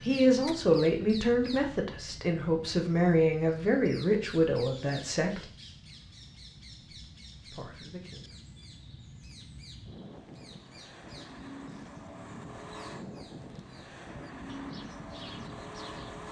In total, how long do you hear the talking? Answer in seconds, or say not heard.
6 s.